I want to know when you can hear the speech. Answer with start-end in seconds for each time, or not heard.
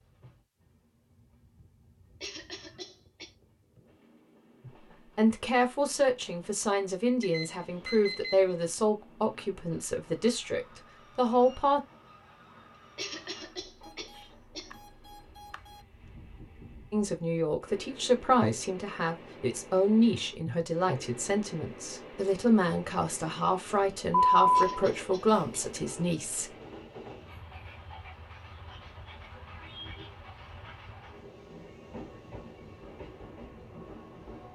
4.7-11.8, 16.9-26.5.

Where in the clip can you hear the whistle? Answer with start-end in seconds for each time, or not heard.
not heard.